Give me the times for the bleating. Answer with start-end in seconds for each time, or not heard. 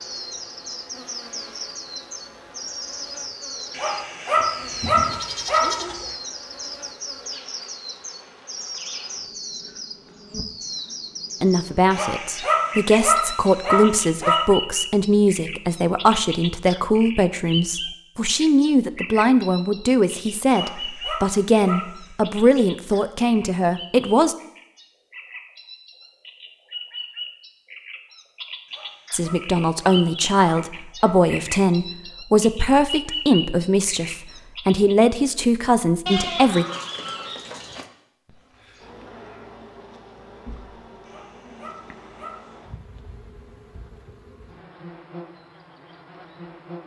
4.3-6.2, 36.0-37.9.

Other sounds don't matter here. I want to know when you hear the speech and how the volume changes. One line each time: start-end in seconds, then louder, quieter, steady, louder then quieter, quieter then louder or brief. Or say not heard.
11.4-24.4 steady
29.1-36.6 steady.